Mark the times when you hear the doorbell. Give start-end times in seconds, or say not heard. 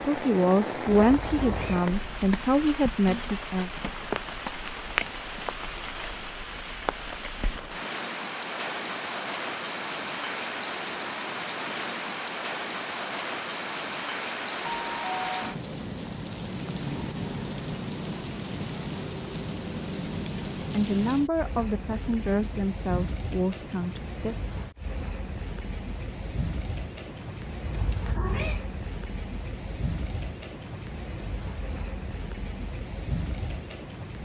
14.6-15.6.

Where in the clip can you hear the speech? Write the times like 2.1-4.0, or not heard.
0.0-3.7, 20.6-24.4.